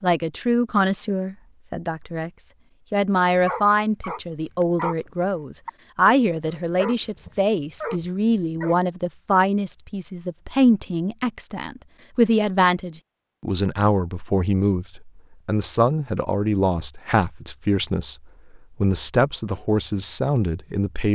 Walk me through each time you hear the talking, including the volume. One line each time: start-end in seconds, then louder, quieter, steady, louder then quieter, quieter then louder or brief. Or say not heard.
0.0-21.1 steady.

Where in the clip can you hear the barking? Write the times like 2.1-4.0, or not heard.
3.2-5.0, 5.7-8.8.